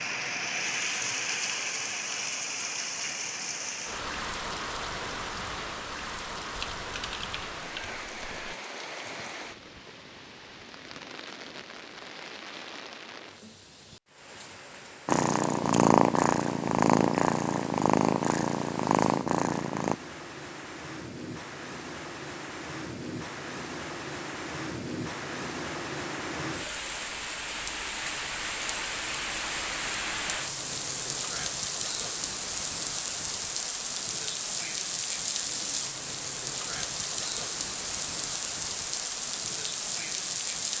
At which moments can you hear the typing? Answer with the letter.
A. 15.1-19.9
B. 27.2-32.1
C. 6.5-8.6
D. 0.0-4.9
C.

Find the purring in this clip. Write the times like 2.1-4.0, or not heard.
15.1-19.9.